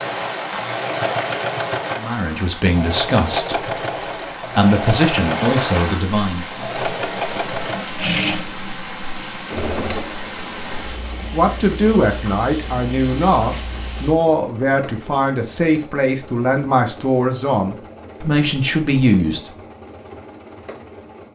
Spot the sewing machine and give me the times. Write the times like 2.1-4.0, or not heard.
0.0-21.3.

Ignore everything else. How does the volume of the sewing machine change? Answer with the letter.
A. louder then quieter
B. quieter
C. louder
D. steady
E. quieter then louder
B.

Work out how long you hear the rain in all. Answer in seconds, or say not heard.
14 s.